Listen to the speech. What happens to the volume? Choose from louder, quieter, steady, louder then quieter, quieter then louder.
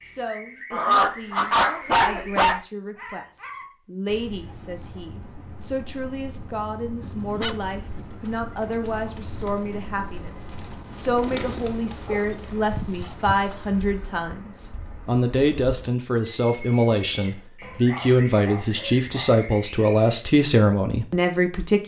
louder.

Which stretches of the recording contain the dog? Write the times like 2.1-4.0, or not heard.
0.7-2.6, 7.0-8.1, 11.9-14.1, 17.6-19.4.